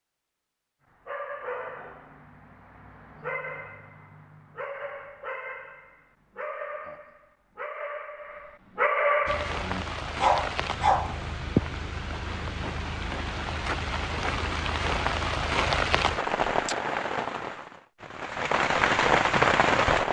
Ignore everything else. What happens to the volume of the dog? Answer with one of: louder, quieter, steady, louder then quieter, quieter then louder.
louder.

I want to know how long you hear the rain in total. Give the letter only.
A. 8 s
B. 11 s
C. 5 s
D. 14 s
B.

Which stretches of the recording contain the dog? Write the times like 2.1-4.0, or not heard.
1.1-11.3.